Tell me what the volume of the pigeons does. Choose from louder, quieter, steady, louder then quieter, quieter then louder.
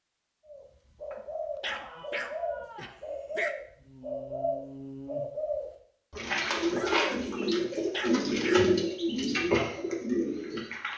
louder.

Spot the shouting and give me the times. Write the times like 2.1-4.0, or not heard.
1.7-3.0, 6.7-7.4.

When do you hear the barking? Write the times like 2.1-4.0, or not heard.
1.1-3.5, 7.4-8.7.